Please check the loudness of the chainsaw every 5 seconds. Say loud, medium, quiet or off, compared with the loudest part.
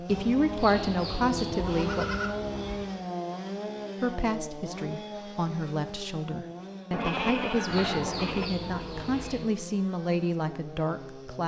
loud, medium, medium.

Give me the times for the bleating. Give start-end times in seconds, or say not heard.
0.1-2.9, 6.9-8.5.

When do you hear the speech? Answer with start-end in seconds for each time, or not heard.
0.0-2.0, 4.0-11.4.